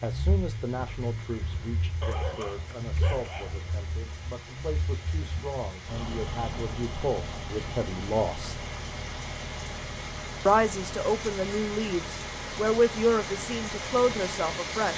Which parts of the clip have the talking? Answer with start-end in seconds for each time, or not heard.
0.0-8.6, 10.4-14.9.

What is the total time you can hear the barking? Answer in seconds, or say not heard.
2 s.